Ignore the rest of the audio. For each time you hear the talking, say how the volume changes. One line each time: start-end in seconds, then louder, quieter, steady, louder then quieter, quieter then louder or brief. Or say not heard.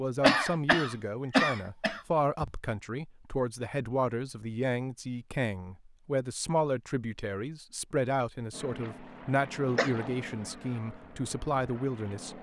0.0-12.3 steady.